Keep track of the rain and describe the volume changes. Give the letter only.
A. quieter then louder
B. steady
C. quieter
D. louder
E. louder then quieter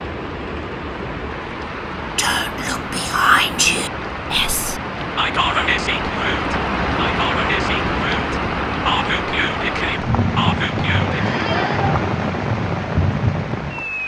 D.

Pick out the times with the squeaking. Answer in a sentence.
You can hear the squeaking from 11.1 to 11.8 s.